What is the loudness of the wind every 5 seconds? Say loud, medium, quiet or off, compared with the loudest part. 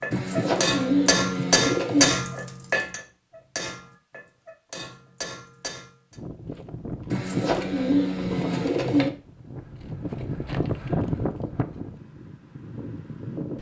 off, medium, loud.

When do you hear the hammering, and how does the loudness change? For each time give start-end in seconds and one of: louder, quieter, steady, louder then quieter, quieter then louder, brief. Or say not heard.
0.0-6.2 quieter.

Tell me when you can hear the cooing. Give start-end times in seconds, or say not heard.
0.1-2.1, 7.0-9.1.